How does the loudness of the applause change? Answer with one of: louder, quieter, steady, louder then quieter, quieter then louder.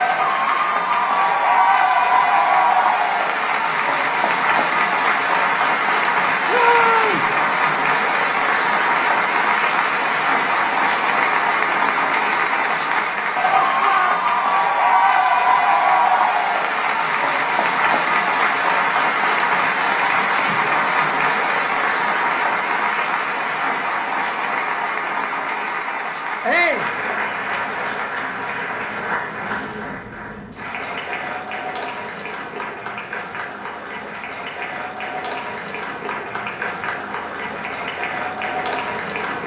quieter.